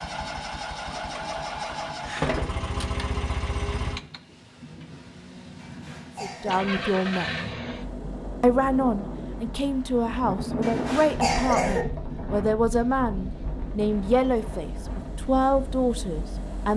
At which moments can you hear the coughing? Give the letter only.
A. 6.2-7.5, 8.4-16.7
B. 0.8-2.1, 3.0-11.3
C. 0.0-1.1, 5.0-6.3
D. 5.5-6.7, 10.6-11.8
D.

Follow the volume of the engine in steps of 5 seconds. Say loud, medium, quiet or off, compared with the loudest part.
loud, medium, quiet, medium.